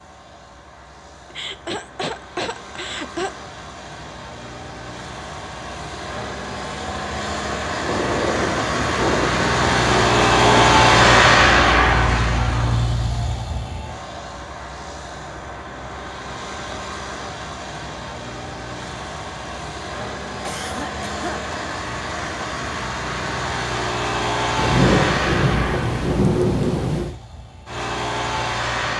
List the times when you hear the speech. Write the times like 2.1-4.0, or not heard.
not heard.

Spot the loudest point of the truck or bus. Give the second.
11 s.